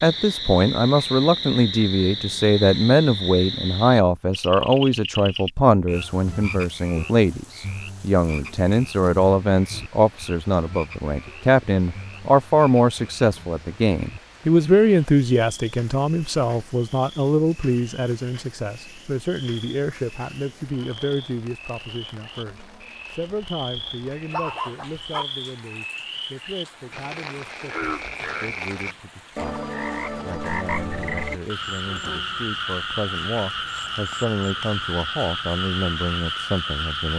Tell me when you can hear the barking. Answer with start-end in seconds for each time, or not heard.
23.9-25.2.